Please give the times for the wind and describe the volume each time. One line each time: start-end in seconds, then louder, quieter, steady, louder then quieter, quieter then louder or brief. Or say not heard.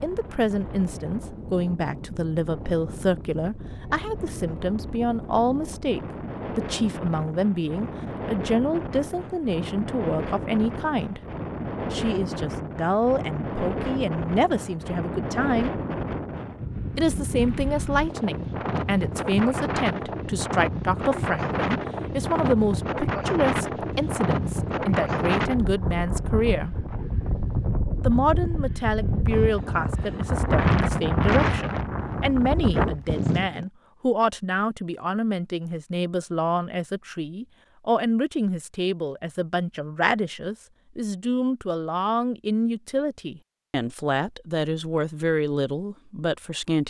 0.0-33.6 louder.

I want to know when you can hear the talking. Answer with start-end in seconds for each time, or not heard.
0.0-11.2, 11.9-15.8, 16.9-26.8, 28.1-46.8.